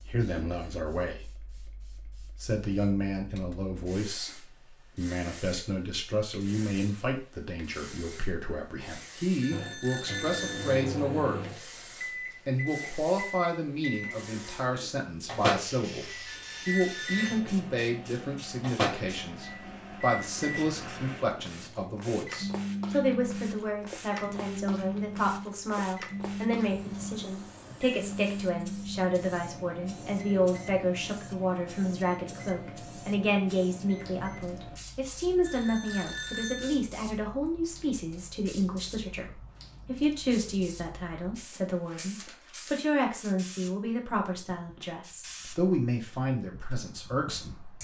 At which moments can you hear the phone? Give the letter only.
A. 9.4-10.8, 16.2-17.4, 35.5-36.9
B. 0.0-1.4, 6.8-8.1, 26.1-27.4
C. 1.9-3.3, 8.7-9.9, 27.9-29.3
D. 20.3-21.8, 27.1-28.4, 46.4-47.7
A.